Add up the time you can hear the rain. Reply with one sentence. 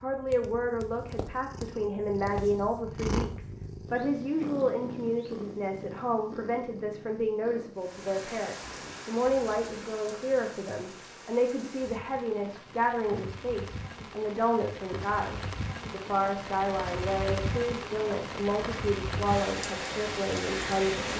You can hear the rain for 13 seconds altogether.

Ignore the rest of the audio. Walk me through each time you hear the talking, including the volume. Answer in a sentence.
The talking can be heard from 0.0 to 21.1 s, at a steady volume.